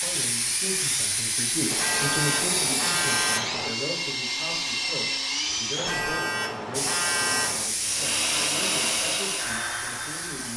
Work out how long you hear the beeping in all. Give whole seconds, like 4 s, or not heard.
4 s.